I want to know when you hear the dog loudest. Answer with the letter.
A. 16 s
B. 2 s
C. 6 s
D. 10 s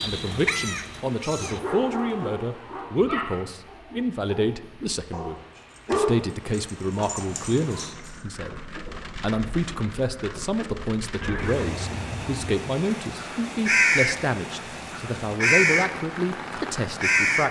C.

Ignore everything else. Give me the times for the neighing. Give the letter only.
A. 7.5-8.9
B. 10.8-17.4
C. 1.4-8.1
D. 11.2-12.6
D.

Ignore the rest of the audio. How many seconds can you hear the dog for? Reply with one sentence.
The dog can be heard for 7 seconds in total.